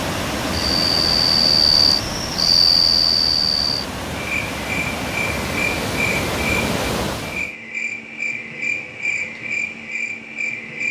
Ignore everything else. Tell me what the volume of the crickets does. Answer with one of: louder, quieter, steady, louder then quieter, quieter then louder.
quieter.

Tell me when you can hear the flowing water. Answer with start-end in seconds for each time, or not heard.
0.0-7.5.